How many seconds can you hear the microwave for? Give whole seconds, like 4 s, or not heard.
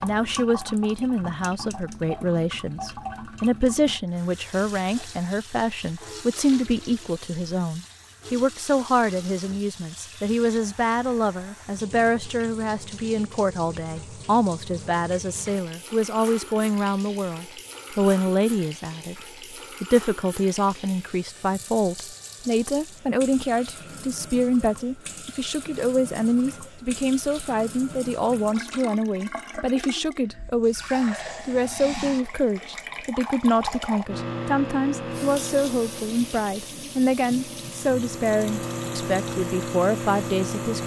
7 s.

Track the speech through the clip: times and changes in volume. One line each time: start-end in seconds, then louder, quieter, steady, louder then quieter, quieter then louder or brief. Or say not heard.
0.0-19.2 steady
19.8-40.8 steady.